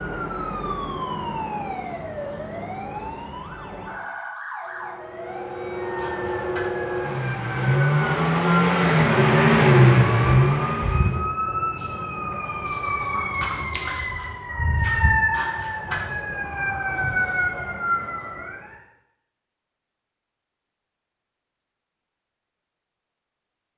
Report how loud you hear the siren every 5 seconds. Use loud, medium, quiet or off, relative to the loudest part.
medium, medium, loud, loud, off.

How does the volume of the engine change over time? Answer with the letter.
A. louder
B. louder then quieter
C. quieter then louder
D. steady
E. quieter
A.